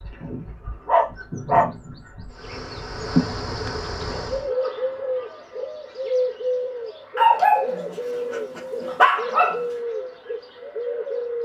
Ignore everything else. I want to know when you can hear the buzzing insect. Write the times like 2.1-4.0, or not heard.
2.3-4.5.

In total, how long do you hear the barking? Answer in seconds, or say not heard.
4 s.